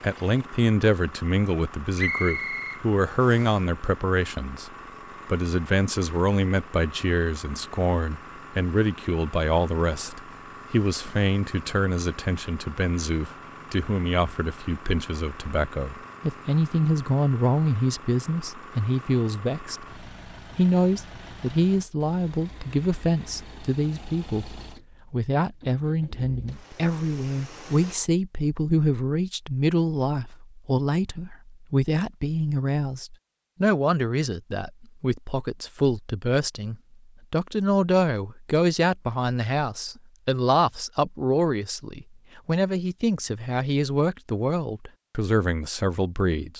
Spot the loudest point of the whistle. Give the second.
2 s.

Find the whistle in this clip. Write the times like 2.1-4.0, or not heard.
1.9-3.5.